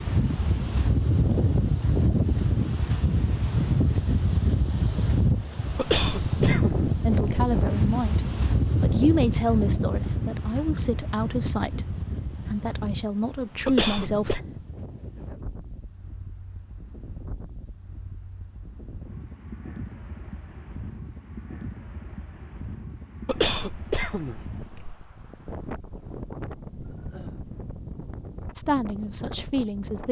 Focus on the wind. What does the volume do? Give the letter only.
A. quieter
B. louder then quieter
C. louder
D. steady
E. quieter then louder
A.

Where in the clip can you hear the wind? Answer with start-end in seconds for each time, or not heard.
0.0-30.0.